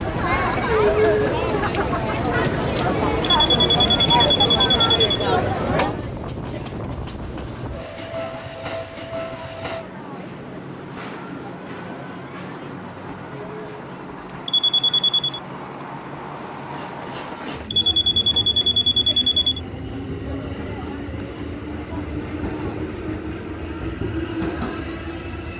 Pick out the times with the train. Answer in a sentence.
You can hear the train from 0.0 to 25.5 s.